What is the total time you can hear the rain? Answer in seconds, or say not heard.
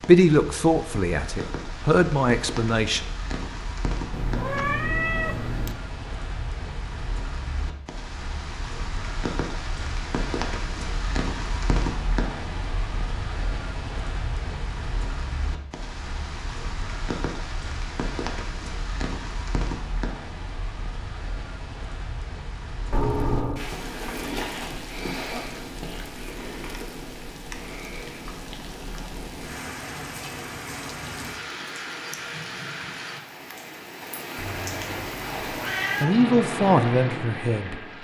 38 s.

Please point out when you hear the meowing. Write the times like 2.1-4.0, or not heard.
4.1-5.8, 22.9-23.7, 34.4-36.1.